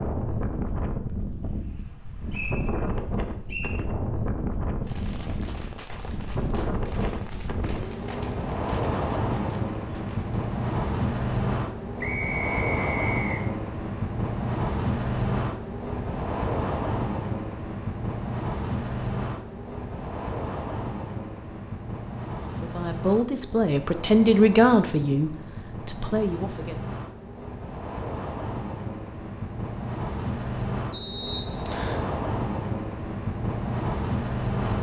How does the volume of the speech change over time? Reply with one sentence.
The volume of the speech goes up, then down.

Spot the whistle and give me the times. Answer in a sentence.
The whistle can be heard from 2.3 to 3.8 s, from 12.0 to 13.4 s and from 30.9 to 32.0 s.